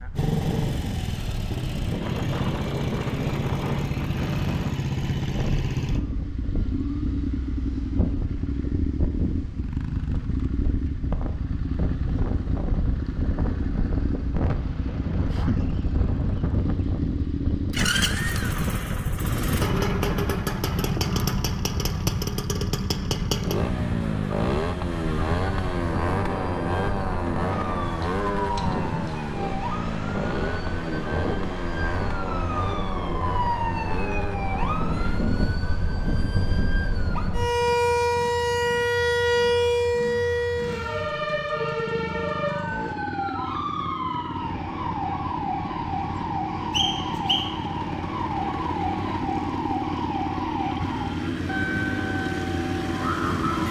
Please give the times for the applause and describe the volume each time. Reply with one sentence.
The applause can't be heard in this clip.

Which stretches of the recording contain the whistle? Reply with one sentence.
You can hear the whistle from 46.7 to 47.5 s.